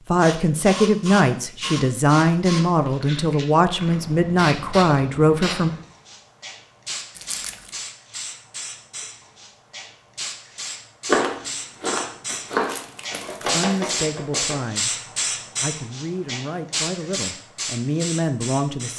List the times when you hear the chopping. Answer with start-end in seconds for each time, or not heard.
11.1-14.6.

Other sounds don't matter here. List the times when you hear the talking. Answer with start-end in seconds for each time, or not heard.
0.1-5.7, 13.4-14.9, 15.6-18.9.